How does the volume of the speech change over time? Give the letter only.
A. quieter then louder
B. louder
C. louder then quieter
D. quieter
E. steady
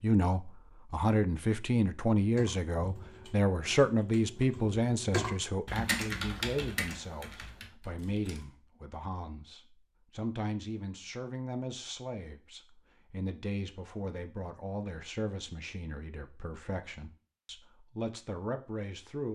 D.